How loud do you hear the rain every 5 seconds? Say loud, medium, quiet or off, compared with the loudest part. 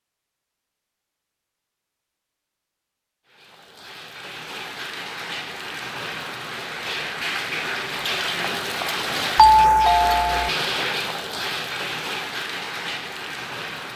medium, loud, loud.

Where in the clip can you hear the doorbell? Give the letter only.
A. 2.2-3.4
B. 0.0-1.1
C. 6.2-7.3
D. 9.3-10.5
D.